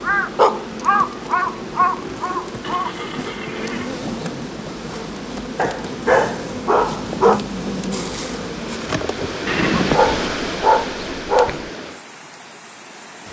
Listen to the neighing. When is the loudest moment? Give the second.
10 s.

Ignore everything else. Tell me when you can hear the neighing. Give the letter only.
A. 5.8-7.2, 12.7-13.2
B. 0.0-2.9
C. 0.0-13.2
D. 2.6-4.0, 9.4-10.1
D.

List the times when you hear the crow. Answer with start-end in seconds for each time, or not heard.
0.0-2.9.